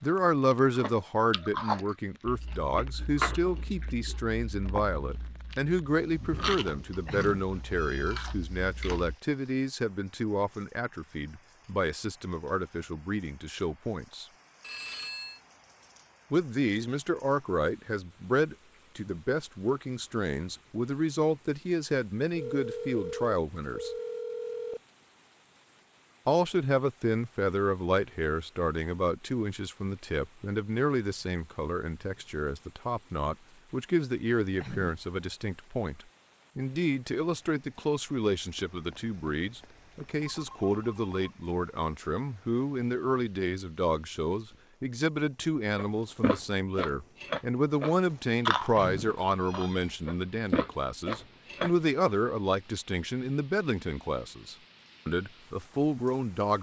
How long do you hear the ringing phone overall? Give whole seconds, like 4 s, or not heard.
6 s.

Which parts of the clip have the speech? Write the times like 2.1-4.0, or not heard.
0.0-14.2, 16.3-23.9, 26.2-56.5.